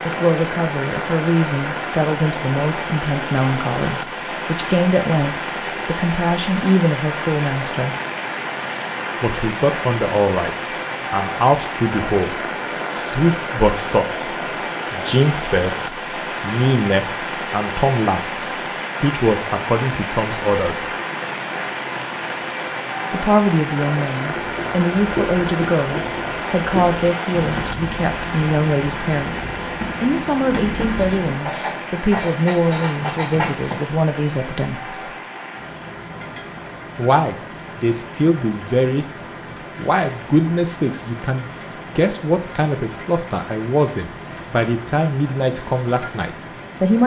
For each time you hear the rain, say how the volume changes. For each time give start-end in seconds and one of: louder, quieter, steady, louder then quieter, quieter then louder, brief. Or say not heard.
0.0-47.0 quieter.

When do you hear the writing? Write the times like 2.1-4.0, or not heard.
24.2-33.9.